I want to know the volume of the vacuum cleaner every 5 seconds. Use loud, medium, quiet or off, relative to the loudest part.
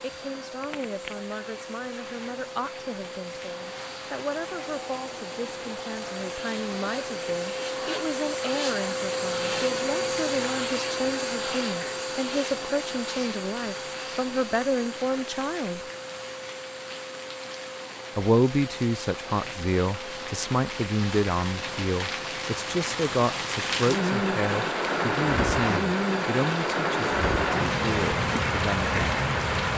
medium, loud, loud, medium, medium, medium.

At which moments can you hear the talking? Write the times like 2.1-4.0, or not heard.
0.0-15.8, 18.1-29.2.